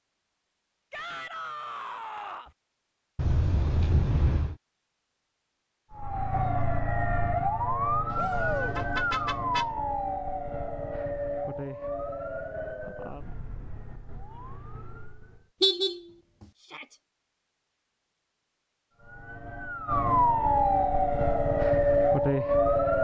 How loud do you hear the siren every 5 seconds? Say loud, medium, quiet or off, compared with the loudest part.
off, medium, quiet, quiet, loud.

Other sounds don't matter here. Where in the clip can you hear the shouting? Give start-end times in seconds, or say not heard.
0.9-2.5, 8.2-8.8, 16.6-17.0.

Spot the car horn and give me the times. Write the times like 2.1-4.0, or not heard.
3.1-4.5, 8.1-9.7, 15.6-16.0.